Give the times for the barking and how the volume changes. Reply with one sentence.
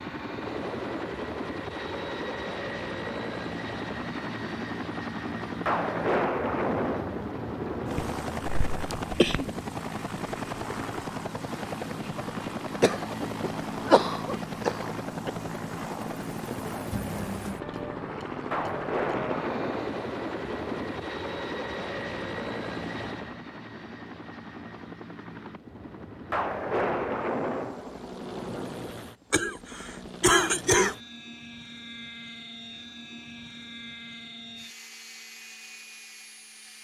The barking can't be heard in this clip.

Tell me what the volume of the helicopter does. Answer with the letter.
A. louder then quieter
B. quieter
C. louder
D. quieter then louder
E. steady
B.